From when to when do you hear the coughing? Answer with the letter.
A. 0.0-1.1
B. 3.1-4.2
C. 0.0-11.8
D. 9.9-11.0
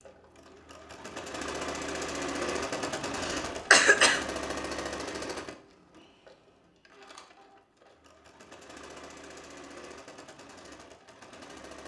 B.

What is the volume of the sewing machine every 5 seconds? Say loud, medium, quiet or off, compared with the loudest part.
loud, medium, quiet.